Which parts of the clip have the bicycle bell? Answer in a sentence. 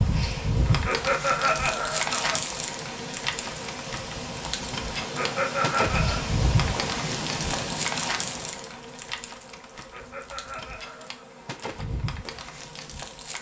You can't hear the bicycle bell here.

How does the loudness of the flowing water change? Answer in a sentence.
The volume of the flowing water goes up.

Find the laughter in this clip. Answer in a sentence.
The laughter can be heard from 0.7 to 2.4 s, from 5.0 to 6.2 s and from 9.7 to 11.2 s.